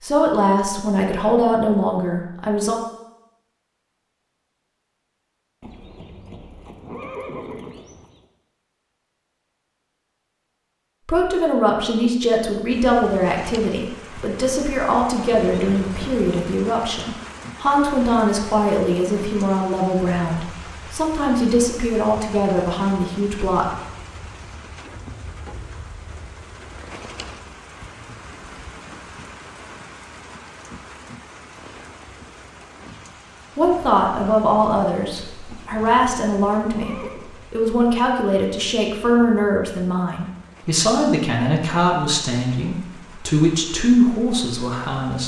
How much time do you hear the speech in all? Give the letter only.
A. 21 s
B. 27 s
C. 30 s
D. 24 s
B.